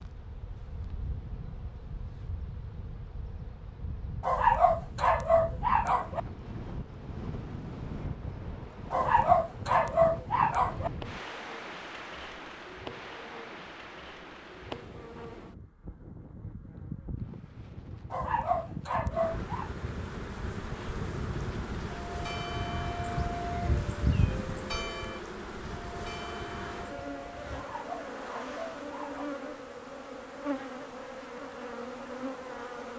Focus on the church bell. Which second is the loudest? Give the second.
24 s.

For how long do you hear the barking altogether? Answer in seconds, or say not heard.
7 s.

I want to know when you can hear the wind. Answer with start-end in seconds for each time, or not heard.
0.0-24.8.